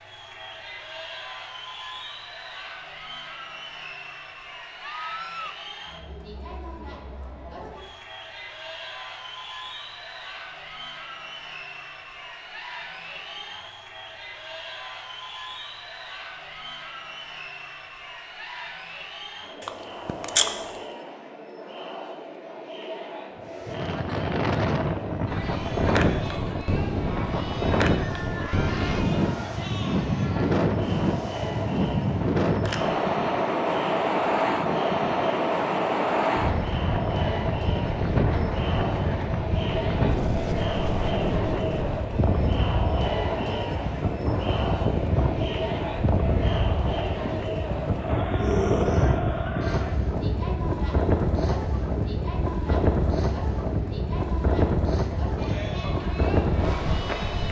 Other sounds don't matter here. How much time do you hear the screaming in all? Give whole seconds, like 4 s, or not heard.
2 s.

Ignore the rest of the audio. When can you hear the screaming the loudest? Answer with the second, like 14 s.
49 s.